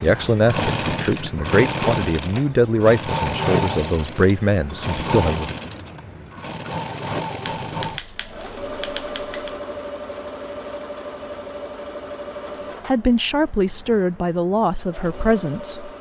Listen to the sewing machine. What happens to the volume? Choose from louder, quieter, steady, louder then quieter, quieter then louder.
quieter.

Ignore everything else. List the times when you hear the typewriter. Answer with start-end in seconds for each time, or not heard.
7.5-9.6.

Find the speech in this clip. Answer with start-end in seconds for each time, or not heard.
0.0-5.5, 12.8-15.9.